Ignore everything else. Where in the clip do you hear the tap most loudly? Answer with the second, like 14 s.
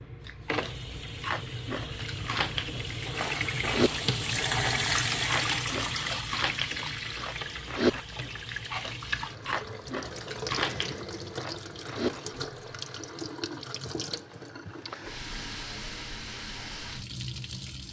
5 s.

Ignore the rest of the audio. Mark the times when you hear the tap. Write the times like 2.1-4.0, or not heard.
0.0-17.8.